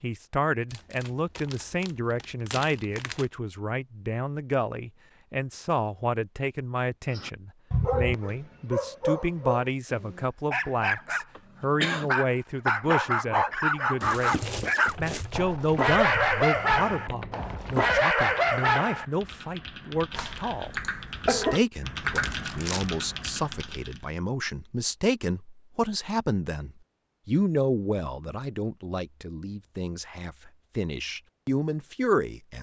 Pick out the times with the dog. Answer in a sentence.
You can hear the dog from 7.1 to 19.1 s.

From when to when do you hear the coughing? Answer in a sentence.
You can hear the coughing from 11.3 to 12.1 s and from 20.1 to 21.6 s.